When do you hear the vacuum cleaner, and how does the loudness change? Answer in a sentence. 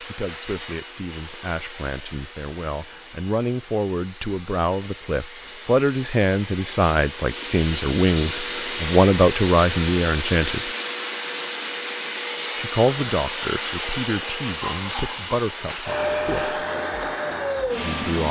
The vacuum cleaner can be heard from 0.0 to 18.2 s, getting louder.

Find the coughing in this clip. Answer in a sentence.
You can hear the coughing from 14.6 to 15.3 s.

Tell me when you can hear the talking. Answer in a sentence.
You can hear the talking from 0.0 to 10.7 s, from 12.6 to 16.6 s and from 17.8 to 18.2 s.